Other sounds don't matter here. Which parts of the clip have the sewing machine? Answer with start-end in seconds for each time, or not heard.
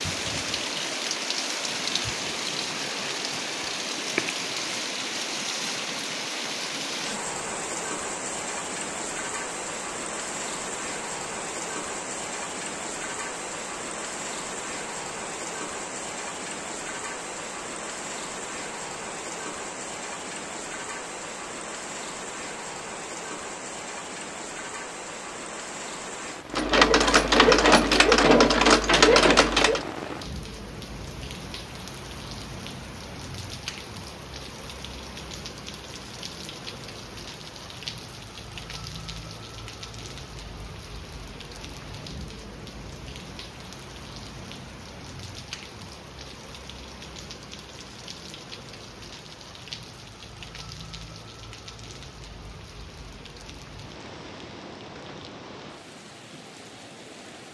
26.5-29.9.